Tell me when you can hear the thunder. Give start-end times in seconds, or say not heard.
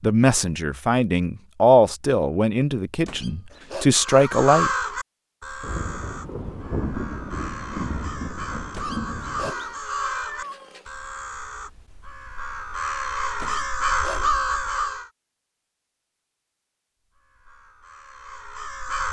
5.6-9.5.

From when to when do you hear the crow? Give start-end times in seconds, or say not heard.
4.0-15.1, 17.1-19.0.